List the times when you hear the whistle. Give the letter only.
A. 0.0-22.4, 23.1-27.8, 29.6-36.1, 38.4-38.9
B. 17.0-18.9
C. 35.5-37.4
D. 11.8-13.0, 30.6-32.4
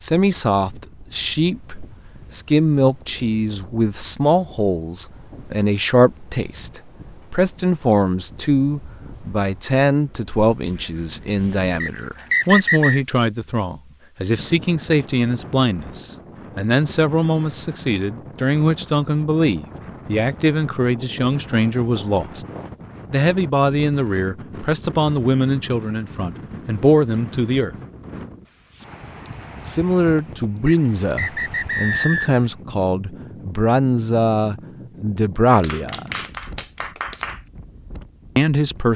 D.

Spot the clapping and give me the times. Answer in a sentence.
You can hear the clapping from 35.5 to 37.4 s.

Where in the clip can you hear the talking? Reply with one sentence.
The talking can be heard from 0.0 to 22.4 s, from 23.1 to 27.8 s, from 29.6 to 36.1 s and from 38.4 to 38.9 s.